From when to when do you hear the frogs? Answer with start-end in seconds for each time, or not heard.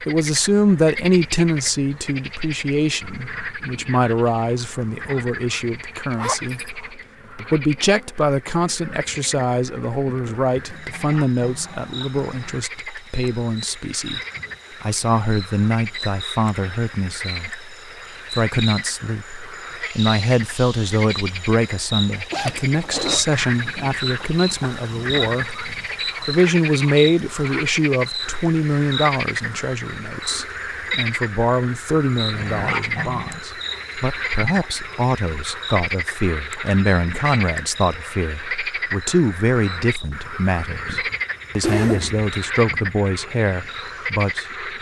0.0-44.7.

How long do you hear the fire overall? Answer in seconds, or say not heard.
not heard.